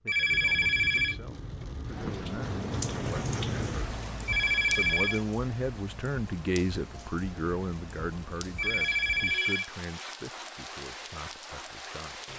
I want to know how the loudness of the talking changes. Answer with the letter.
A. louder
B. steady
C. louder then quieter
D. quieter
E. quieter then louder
C.